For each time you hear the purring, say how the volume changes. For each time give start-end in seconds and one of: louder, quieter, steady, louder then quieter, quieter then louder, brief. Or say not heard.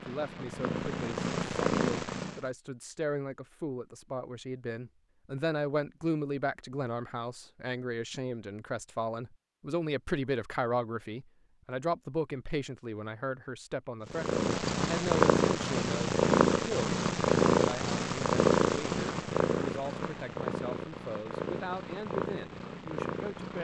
0.0-2.4 brief
14.1-23.6 quieter.